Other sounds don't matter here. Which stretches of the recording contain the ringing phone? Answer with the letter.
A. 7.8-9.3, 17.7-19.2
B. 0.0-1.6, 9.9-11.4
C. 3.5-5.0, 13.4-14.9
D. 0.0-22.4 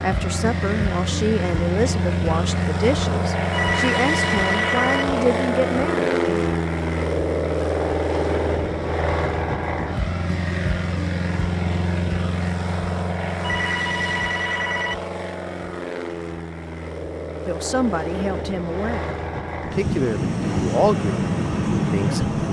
C.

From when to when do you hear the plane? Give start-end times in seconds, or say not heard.
0.0-22.4.